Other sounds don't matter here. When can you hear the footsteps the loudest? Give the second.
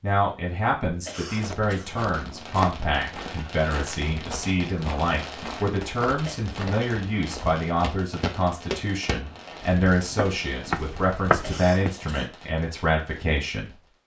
11 s.